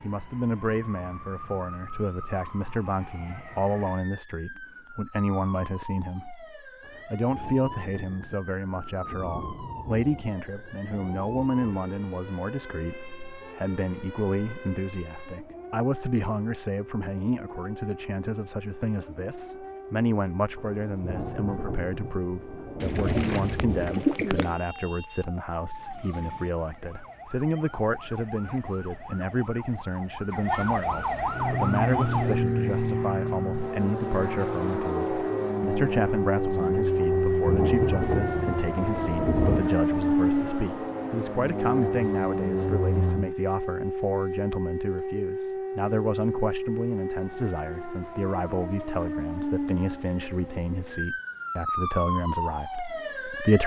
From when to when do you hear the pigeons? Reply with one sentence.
The pigeons can be heard from 22.8 to 24.6 s.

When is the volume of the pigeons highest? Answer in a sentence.
The loudest moment of the pigeons is at 24 seconds.